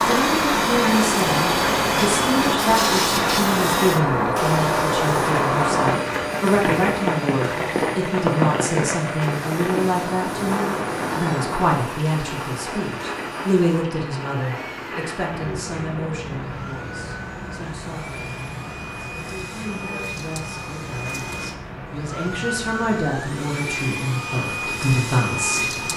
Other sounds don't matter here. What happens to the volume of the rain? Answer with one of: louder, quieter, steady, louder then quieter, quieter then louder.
quieter.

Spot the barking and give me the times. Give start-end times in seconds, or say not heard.
not heard.